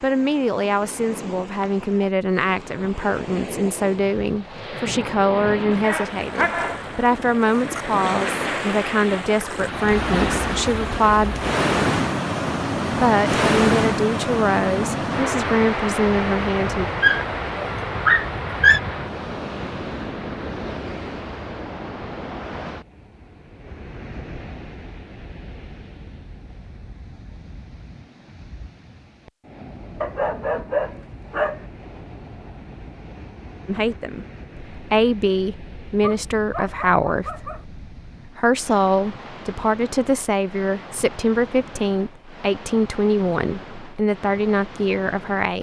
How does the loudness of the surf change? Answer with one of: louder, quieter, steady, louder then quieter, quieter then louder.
louder then quieter.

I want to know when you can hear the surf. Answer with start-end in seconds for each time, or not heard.
0.0-45.5.